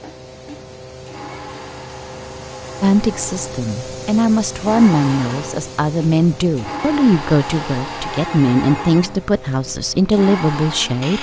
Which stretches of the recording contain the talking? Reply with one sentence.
The talking can be heard from 2.8 to 11.1 s.